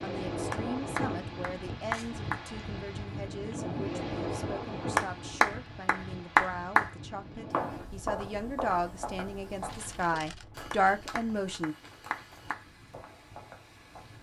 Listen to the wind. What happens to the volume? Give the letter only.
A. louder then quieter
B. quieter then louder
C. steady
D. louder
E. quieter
E.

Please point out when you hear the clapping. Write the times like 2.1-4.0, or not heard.
0.5-2.5, 5.0-6.9, 10.7-12.7.